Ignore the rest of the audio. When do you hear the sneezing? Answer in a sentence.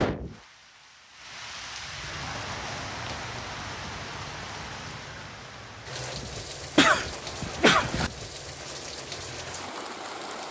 You can hear the sneezing from 6.8 to 8.1 s.